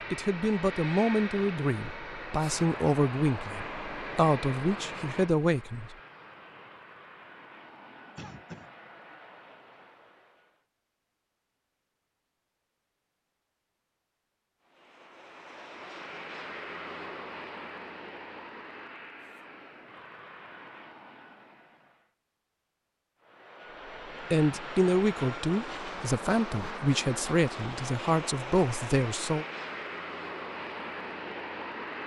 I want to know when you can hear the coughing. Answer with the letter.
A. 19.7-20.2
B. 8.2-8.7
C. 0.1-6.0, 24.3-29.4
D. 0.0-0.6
B.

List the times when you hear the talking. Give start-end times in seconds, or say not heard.
0.1-6.0, 24.3-29.4.